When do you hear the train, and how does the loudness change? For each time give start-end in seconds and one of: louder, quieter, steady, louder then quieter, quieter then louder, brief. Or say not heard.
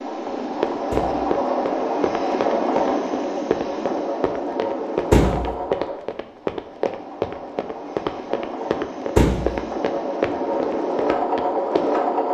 0.0-12.2 quieter then louder.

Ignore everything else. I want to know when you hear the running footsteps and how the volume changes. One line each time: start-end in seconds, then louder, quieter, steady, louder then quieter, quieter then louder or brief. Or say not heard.
0.2-12.2 steady.